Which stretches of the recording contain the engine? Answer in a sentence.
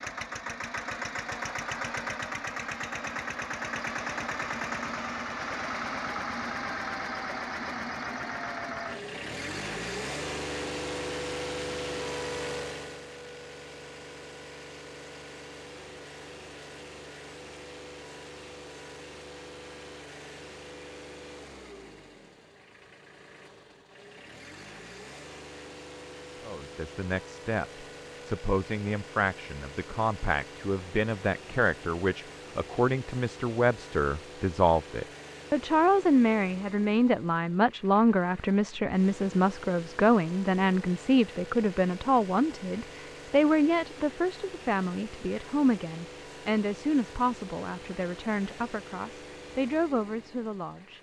The engine can be heard from 0.0 to 50.9 s.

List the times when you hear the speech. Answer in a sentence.
You can hear the speech from 26.4 to 50.9 s.